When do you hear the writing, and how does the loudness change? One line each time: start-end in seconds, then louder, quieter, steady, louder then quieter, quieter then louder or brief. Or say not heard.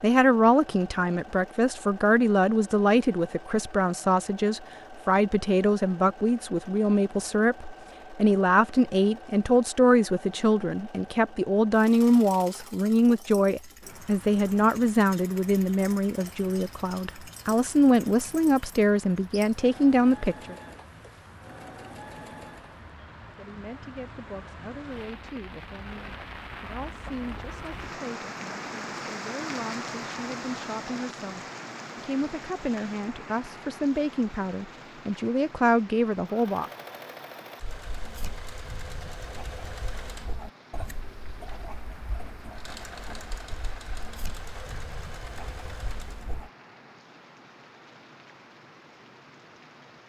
37.6-46.5 steady.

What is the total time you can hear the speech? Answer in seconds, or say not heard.
34 s.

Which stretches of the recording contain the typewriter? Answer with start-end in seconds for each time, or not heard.
not heard.